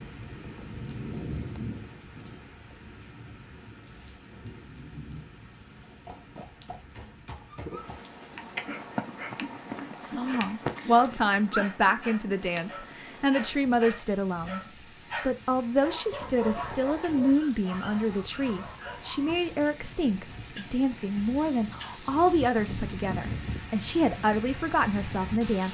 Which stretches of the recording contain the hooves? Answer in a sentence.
You can hear the hooves from 5.8 to 12.8 s.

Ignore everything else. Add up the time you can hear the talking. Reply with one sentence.
The talking can be heard for 15 seconds in total.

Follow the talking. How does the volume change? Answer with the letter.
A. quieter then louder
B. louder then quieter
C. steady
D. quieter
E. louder
C.